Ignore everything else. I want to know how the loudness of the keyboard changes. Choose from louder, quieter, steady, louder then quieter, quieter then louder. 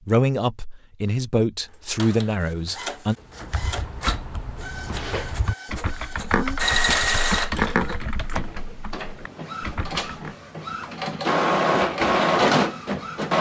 louder then quieter.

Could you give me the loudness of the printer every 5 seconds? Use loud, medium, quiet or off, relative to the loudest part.
medium, medium, loud.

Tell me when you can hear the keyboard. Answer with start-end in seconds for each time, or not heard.
3.2-10.3.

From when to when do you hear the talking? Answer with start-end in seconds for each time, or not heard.
0.1-3.1.